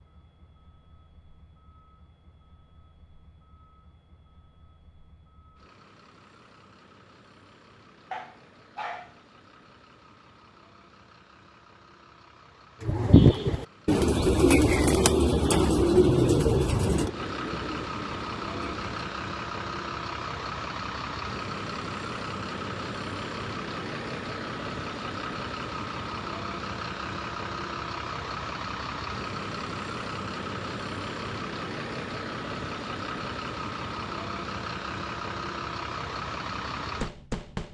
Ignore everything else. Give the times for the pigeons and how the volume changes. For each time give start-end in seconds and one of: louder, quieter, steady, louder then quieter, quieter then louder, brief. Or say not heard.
12.8-19.0 quieter.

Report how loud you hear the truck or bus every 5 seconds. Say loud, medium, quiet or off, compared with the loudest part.
quiet, quiet, quiet, loud, loud, loud, loud, loud.